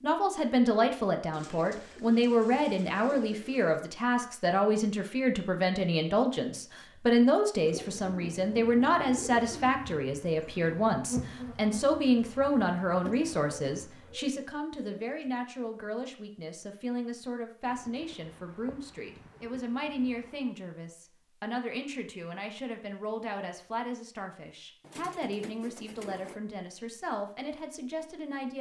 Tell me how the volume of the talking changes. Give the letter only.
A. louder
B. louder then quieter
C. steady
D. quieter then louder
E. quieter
E.